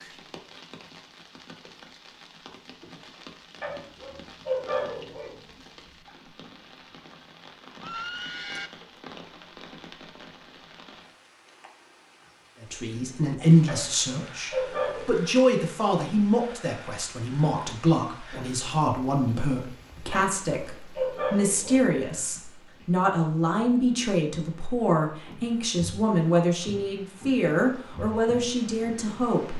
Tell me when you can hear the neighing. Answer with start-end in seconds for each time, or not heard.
7.8-8.7.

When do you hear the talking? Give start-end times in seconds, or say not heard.
12.6-29.5.